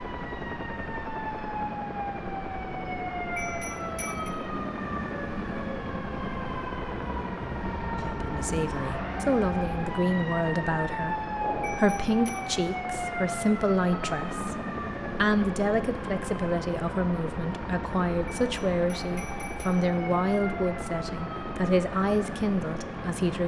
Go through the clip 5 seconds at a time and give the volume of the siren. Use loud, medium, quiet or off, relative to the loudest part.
loud, loud, loud, medium, medium.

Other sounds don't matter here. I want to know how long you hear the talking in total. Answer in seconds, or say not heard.
15 s.